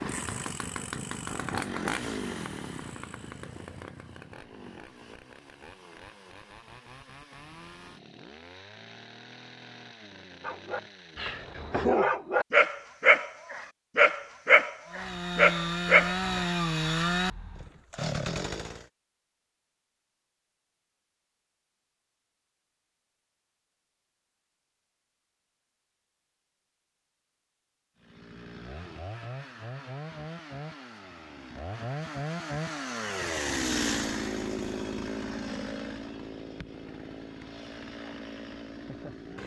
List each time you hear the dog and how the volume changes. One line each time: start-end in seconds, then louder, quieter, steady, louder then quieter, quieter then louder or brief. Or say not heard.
10.4-16.5 louder.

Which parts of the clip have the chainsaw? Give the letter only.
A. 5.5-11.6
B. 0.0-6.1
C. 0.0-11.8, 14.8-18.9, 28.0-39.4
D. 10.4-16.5
C.